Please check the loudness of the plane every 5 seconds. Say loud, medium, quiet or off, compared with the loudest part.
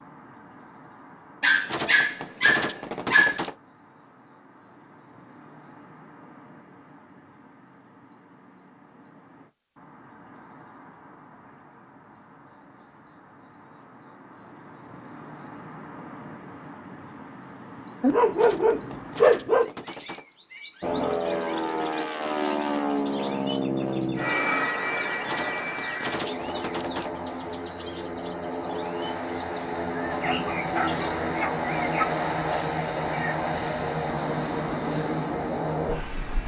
off, off, off, off, loud, medium, loud, loud.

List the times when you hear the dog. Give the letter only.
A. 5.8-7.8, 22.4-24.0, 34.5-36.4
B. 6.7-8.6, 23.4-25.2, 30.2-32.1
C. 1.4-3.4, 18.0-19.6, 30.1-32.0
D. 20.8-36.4
C.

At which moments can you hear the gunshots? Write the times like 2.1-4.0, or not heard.
1.6-3.5, 18.4-20.2, 25.2-27.1.